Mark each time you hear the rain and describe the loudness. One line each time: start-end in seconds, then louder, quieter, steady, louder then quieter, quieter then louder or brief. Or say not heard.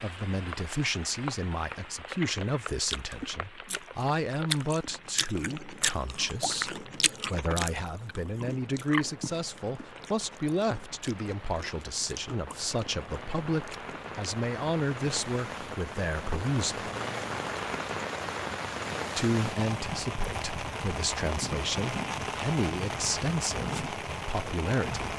0.0-25.1 quieter then louder.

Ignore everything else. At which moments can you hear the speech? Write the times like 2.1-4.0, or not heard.
0.0-16.9, 19.1-25.1.